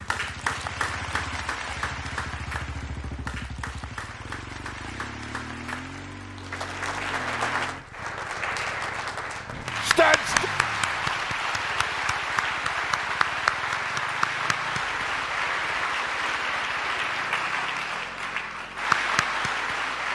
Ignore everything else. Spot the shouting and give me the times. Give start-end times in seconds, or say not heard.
9.8-10.5.